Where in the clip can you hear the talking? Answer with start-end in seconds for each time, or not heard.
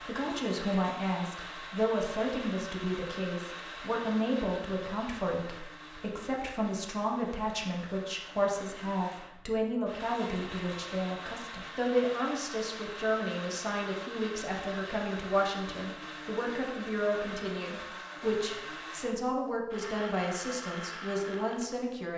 0.0-22.1.